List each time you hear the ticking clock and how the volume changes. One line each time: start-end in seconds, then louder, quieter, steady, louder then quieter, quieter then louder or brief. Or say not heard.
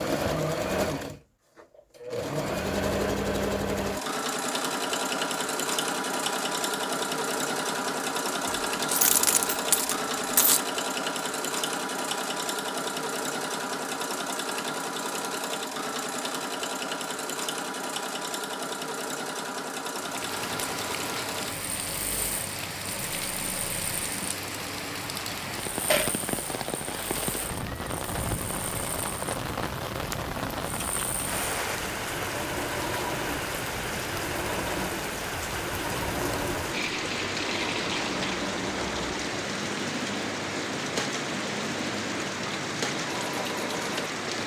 not heard.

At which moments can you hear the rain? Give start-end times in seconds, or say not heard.
19.9-44.4.